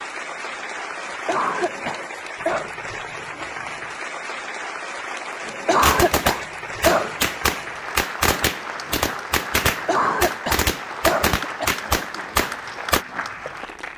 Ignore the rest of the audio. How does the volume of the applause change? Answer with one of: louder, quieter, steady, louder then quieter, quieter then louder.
steady.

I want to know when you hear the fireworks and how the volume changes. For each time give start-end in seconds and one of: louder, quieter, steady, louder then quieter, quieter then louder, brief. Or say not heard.
5.8-13.1 steady.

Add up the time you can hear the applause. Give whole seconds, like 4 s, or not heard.
14 s.